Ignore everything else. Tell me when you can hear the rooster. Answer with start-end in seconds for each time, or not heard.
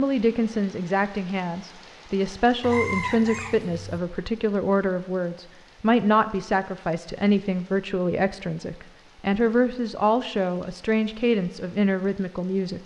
2.6-3.9.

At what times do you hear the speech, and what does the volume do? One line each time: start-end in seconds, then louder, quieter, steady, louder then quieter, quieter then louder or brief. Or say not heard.
0.0-12.8 steady.